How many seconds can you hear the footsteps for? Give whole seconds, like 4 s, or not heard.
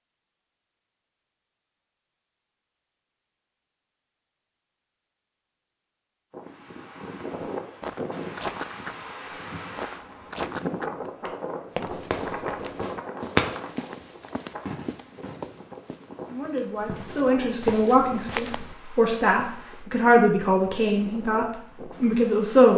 10 s.